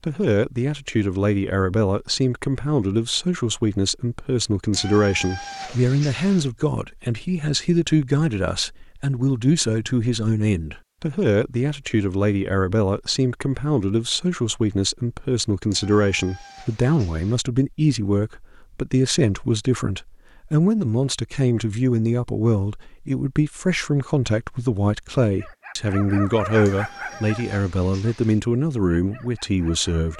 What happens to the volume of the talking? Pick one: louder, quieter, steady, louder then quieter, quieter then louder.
steady.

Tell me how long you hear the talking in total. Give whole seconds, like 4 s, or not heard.
30 s.